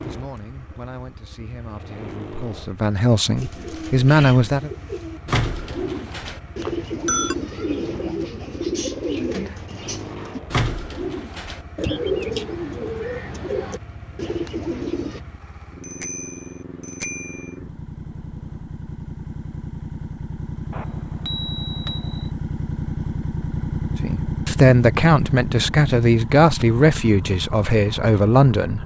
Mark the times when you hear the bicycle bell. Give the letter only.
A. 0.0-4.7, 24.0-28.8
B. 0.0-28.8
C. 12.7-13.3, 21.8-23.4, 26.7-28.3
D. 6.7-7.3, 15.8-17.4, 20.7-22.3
D.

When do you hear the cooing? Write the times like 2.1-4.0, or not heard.
3.4-15.2.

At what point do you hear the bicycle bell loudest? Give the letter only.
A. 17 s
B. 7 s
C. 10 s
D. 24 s
B.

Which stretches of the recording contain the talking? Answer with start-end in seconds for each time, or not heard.
0.0-4.7, 24.0-28.8.